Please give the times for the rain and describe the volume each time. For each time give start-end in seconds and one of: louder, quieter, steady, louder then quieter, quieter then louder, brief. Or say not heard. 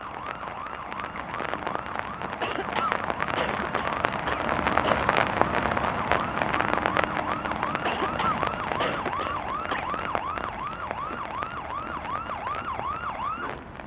0.0-13.8 louder then quieter.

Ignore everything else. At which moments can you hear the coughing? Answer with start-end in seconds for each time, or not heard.
2.4-5.1, 7.8-9.9.